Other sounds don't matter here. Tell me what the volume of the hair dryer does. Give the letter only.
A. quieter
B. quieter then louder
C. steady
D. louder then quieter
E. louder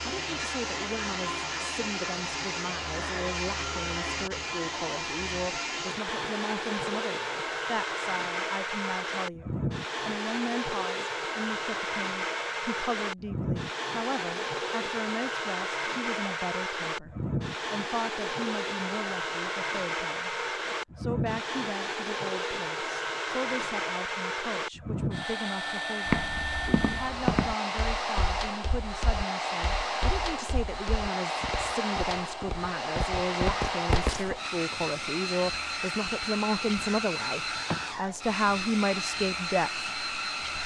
C.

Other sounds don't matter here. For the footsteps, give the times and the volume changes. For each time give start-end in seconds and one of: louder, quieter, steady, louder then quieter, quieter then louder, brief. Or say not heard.
26.1-34.4 quieter then louder.